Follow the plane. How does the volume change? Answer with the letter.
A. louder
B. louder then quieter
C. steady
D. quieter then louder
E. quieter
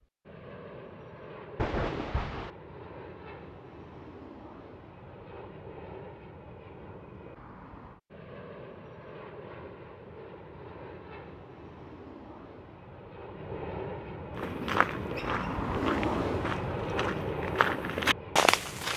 A.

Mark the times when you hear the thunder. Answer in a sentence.
You can hear the thunder from 1.6 to 2.5 s.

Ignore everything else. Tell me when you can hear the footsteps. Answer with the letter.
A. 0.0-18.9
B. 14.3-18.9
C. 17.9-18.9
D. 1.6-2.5
B.